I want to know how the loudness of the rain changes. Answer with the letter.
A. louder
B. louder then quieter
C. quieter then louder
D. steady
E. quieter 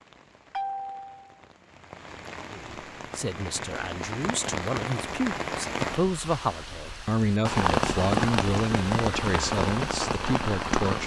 A.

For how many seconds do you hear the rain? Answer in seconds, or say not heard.
11 s.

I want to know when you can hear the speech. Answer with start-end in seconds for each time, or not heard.
2.5-11.0.